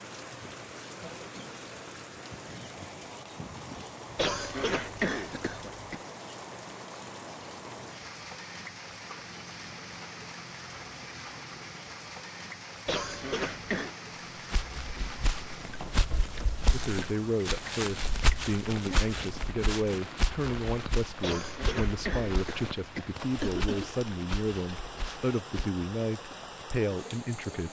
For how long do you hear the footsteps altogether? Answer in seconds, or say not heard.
11 s.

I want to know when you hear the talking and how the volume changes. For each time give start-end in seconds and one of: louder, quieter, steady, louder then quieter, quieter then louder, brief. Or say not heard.
16.7-27.6 steady.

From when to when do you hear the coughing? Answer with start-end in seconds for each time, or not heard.
4.2-6.0, 12.8-13.9, 21.2-23.9.